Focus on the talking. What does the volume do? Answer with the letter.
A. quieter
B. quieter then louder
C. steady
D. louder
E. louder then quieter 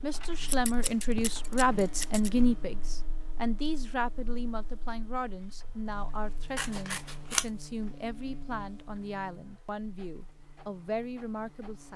A.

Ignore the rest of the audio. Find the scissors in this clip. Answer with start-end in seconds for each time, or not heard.
0.5-2.3, 6.5-7.5.